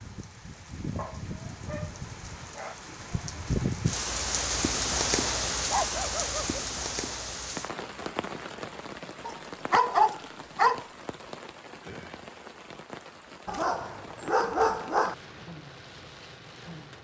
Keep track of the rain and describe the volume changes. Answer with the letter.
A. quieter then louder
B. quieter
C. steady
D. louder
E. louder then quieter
E.